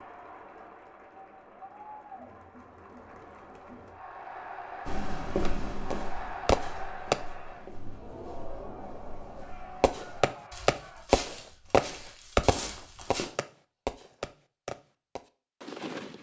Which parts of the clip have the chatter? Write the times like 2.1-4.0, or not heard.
0.0-11.1.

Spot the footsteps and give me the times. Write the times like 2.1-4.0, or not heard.
4.8-13.2.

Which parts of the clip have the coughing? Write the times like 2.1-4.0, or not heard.
not heard.